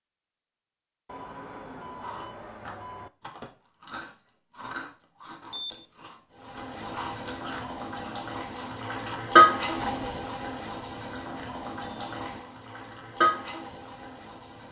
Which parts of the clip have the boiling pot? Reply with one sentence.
The boiling pot can be heard from 6.4 to 14.6 s.